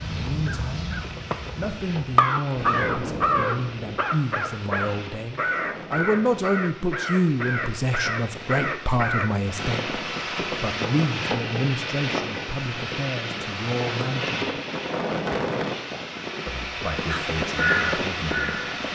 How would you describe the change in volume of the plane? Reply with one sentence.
The volume of the plane goes up.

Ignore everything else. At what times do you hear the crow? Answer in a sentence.
The crow can be heard from 0.0 to 9.3 s and from 17.1 to 18.7 s.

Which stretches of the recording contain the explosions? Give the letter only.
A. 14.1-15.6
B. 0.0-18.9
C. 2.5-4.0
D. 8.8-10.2
C.